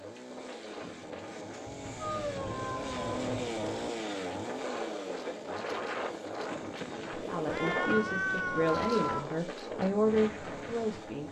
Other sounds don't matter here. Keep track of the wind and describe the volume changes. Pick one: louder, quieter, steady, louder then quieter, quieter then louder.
louder.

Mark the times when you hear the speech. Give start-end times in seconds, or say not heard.
7.1-11.2.